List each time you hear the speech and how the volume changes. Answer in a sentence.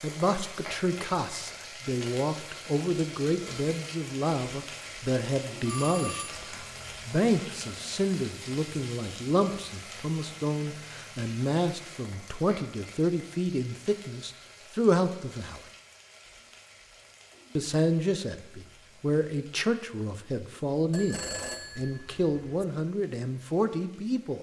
The speech can be heard from 0.0 to 15.6 s, at a steady volume; and from 17.6 to 24.3 s, at a steady volume.